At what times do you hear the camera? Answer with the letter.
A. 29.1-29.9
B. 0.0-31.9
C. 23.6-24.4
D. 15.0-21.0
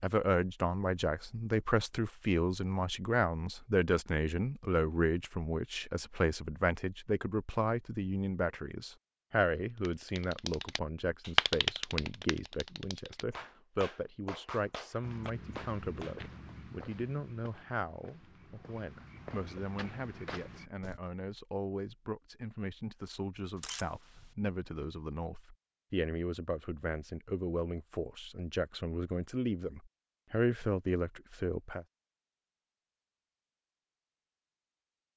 C.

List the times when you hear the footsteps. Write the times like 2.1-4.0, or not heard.
15.0-21.0.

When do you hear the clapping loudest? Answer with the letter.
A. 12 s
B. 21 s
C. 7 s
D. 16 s
A.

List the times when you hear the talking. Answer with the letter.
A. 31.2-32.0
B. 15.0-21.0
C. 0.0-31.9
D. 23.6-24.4
C.